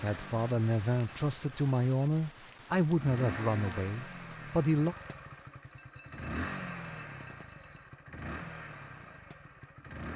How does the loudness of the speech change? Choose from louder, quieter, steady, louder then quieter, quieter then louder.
quieter.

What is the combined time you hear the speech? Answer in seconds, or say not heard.
5 s.